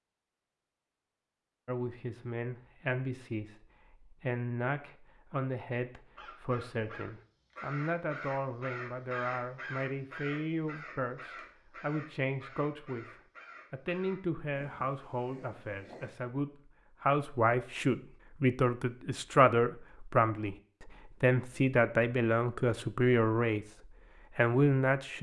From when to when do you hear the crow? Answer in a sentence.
You can hear the crow from 6.2 to 16.1 s.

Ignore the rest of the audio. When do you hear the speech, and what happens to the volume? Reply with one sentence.
You can hear the speech from 1.6 to 13.1 s, at a steady volume; from 13.7 to 23.6 s, getting louder; and briefly from 24.4 to 25.1 s.